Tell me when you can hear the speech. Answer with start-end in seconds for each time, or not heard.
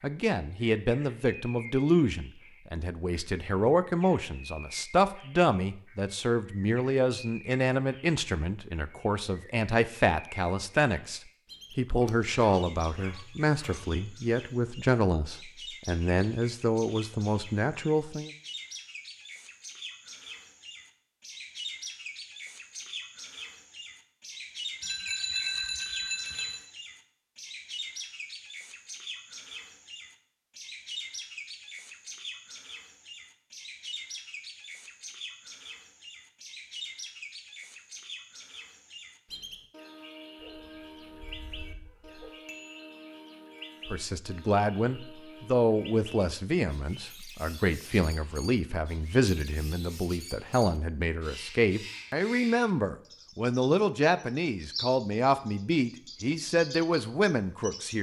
0.0-18.3, 43.9-57.9.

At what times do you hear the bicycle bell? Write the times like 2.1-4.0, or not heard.
24.8-26.6, 42.5-43.0.